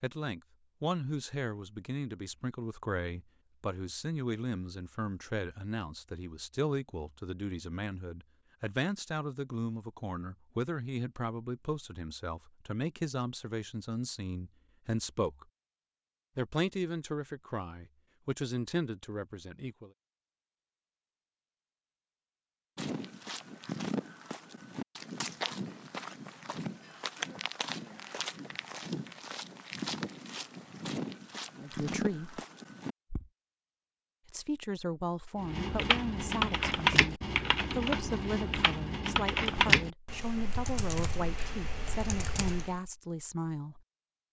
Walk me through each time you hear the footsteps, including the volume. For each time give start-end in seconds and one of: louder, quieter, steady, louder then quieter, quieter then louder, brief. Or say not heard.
22.8-33.3 steady.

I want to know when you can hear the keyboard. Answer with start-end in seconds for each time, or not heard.
35.4-42.8.